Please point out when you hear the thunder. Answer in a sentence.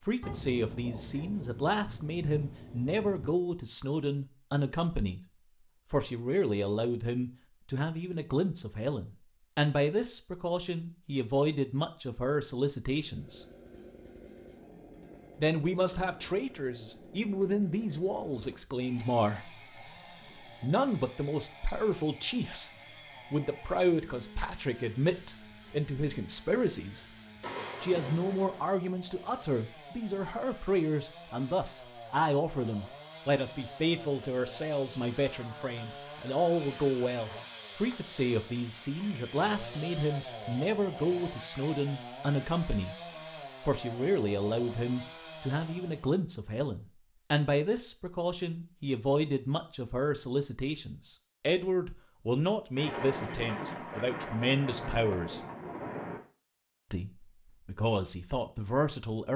The thunder can be heard from 0.2 to 3.4 s, from 27.4 to 28.6 s and from 52.8 to 56.2 s.